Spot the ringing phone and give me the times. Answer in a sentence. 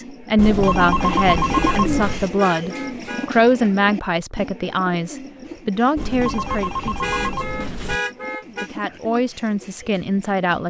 The ringing phone can be heard from 0.3 to 2.3 s and from 6.0 to 8.0 s.